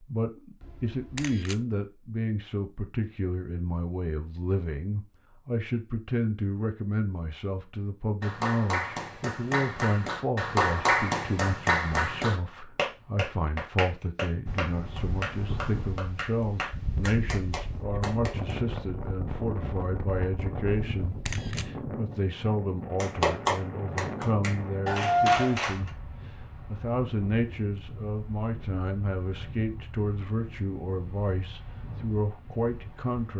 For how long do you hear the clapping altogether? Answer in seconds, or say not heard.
13 s.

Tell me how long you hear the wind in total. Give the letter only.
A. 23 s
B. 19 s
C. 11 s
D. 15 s
B.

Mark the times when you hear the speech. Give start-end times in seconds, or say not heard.
0.0-33.3.